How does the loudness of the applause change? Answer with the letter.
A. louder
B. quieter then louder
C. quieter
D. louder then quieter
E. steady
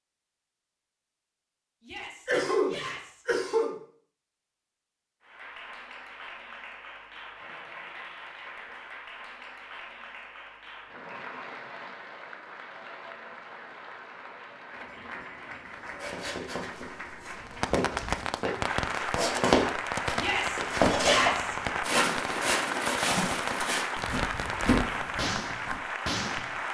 A.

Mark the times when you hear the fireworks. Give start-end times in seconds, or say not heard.
17.4-26.6.